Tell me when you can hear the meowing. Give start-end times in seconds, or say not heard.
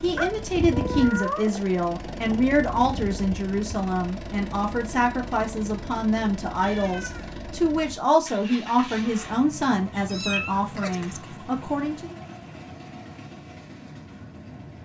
0.1-1.6, 6.6-7.3, 9.9-11.3.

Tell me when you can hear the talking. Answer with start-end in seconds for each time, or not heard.
0.0-12.2.